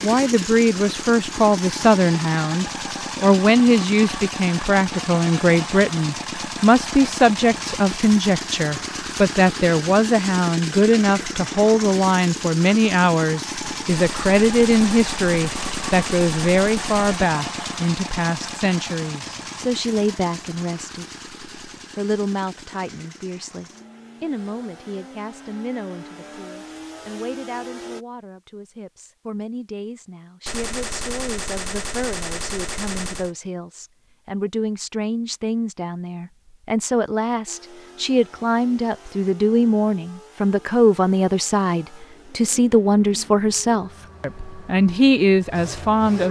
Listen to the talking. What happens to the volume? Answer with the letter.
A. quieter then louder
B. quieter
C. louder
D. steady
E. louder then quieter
A.